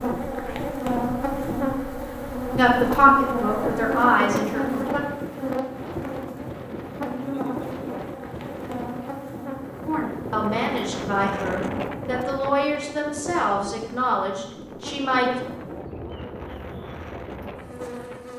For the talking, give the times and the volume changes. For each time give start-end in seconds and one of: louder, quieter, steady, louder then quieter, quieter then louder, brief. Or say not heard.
2.5-5.0 brief
9.8-15.4 steady.